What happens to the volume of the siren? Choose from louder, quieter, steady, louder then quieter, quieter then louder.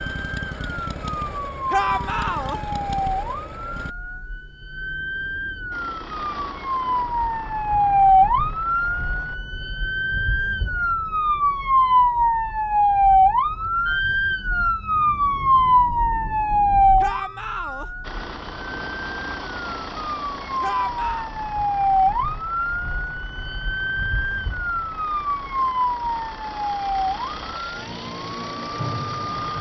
louder then quieter.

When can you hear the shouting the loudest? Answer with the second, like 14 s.
2 s.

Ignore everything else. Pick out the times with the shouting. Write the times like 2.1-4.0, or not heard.
1.7-2.6, 17.0-17.9, 20.6-21.3.